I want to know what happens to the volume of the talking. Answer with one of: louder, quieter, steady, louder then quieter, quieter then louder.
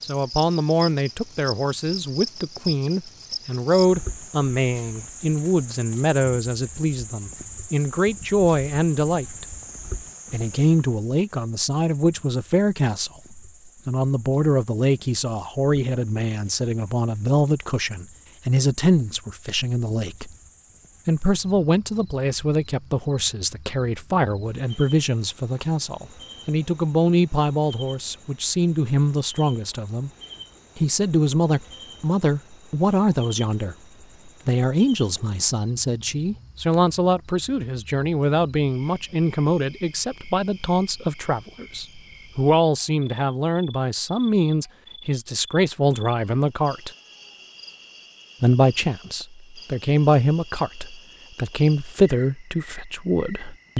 steady.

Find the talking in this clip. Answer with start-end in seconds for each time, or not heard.
0.0-9.4, 10.3-20.3, 21.1-30.1, 30.8-33.8, 34.5-46.9, 48.4-53.7.